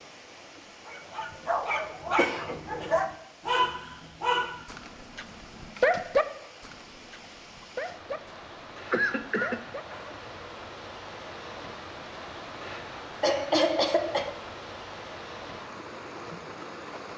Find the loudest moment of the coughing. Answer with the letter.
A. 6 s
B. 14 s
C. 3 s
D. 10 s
B.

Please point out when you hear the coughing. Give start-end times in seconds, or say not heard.
2.1-3.0, 8.9-9.6, 13.2-14.3.